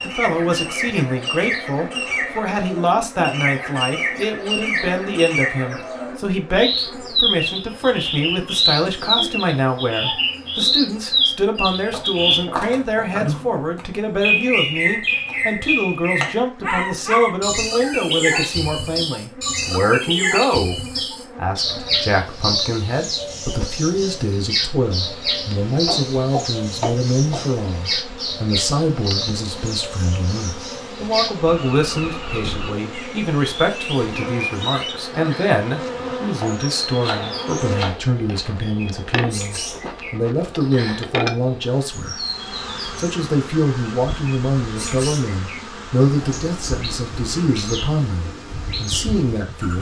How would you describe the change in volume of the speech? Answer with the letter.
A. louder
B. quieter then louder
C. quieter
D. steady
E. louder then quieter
D.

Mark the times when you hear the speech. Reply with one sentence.
You can hear the speech from 0.0 to 42.2 s and from 43.0 to 49.7 s.